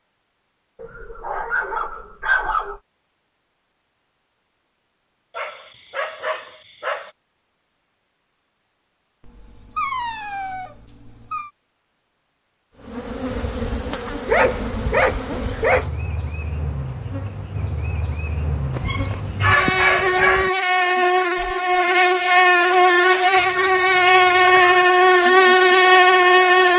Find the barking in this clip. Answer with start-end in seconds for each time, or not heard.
0.8-2.8, 5.3-7.1, 9.2-11.5, 14.2-15.9, 18.7-20.5, 23.4-24.9.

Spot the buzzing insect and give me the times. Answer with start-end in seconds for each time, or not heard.
12.8-26.7.